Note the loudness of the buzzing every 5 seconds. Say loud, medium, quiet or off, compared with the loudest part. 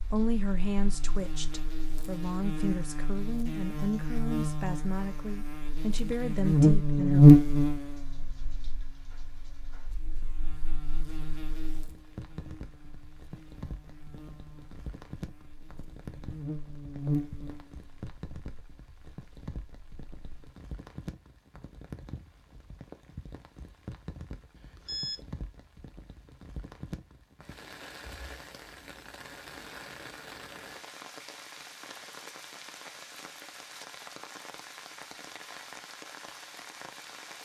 quiet, loud, quiet, quiet, off, off, off, off.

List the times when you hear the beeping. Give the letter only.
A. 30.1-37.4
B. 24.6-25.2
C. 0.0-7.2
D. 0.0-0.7
B.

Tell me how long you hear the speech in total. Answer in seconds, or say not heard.
7 s.